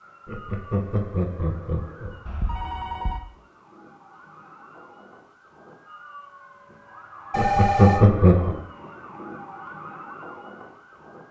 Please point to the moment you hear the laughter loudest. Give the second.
8 s.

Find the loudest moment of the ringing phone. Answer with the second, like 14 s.
8 s.